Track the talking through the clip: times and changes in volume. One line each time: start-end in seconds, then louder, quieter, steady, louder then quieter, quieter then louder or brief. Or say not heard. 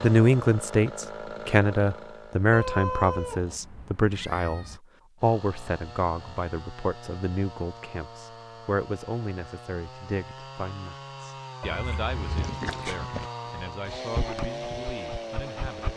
0.0-15.9 quieter.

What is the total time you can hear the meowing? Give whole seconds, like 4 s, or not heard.
3 s.